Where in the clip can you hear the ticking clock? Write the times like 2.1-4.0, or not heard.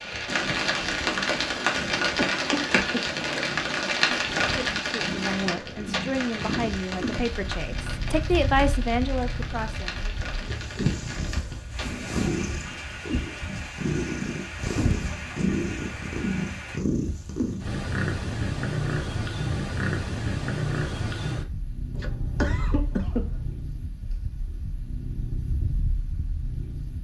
not heard.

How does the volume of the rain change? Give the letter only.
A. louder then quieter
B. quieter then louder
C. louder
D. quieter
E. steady
D.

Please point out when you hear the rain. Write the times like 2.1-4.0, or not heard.
0.0-16.8.